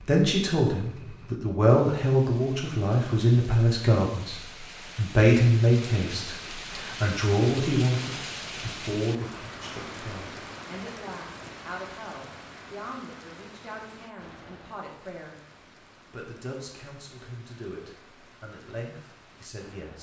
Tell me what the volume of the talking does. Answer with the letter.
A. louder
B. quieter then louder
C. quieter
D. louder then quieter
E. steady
C.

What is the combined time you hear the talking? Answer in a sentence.
The talking can be heard for 19 seconds in total.